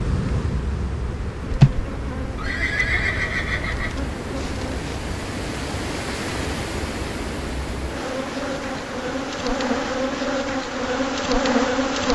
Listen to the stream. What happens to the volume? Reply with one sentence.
The volume of the stream goes up, then down.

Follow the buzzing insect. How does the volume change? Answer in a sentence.
The volume of the buzzing insect goes down, then up.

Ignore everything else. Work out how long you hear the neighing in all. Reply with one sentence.
You can hear the neighing for 2 seconds altogether.